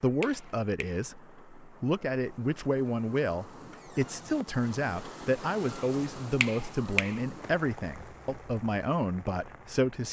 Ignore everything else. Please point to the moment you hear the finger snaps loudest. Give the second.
7 s.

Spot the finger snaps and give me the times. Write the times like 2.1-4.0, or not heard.
0.2-1.0, 6.4-7.2.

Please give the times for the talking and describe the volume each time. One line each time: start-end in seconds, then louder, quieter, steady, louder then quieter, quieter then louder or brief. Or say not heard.
0.0-10.0 steady.